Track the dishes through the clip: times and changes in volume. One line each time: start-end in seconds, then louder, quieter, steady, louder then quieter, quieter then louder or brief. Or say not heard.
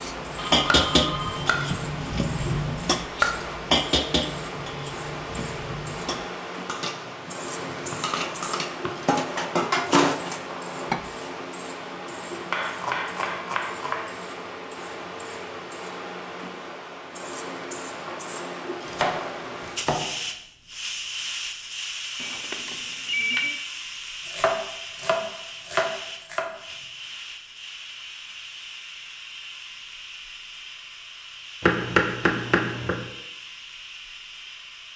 0.0-11.1 quieter then louder.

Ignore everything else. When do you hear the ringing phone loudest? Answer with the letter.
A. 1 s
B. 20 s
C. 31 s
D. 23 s
D.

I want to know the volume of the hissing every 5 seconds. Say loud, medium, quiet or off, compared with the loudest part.
loud, loud, loud, loud, loud, medium, medium.